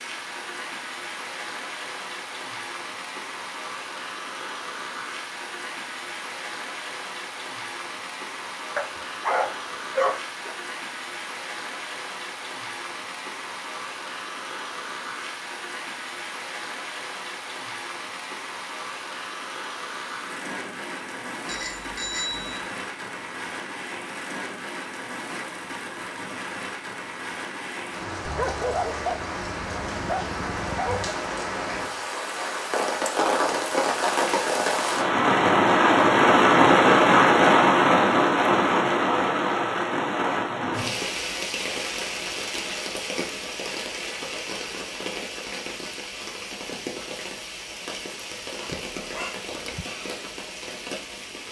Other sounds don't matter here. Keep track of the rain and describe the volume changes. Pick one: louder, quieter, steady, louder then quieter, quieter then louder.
louder then quieter.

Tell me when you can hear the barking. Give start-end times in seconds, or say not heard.
8.8-10.6, 28.2-31.2, 48.6-49.9.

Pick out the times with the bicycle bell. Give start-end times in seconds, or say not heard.
21.4-22.6.